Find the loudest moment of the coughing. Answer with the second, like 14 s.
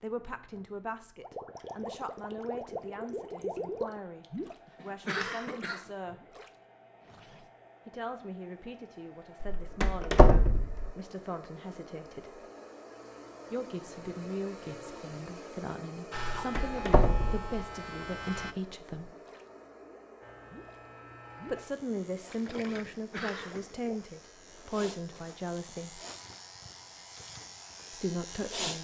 5 s.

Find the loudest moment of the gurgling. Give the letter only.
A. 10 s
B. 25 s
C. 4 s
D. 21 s
C.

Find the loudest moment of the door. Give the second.
10 s.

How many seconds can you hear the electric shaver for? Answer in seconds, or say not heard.
11 s.